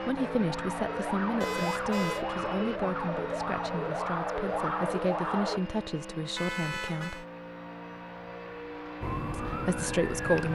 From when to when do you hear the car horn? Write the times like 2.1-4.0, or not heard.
1.4-2.2, 6.3-7.2.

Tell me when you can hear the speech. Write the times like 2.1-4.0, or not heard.
0.0-7.2, 9.3-10.5.